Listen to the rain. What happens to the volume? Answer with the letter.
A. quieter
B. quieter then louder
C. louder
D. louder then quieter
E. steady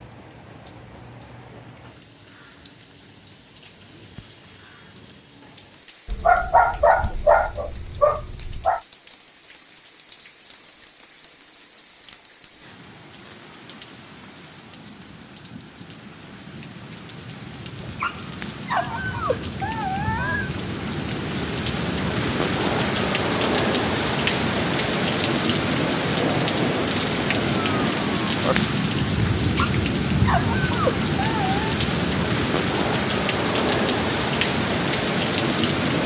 C.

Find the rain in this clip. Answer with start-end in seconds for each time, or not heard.
0.0-36.0.